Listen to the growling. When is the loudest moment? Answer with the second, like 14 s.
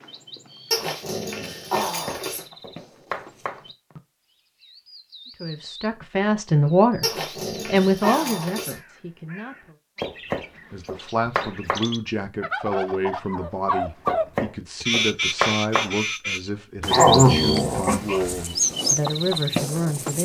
17 s.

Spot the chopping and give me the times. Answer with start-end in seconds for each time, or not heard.
1.8-3.6, 10.0-11.9, 14.1-15.9.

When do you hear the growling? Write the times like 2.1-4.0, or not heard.
0.7-2.5, 7.0-8.8, 16.9-18.4.